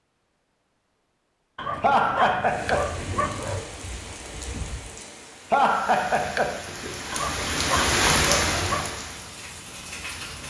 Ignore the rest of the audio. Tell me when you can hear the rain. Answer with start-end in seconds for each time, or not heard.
2.4-10.4.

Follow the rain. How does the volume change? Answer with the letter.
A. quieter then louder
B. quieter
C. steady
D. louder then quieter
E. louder
D.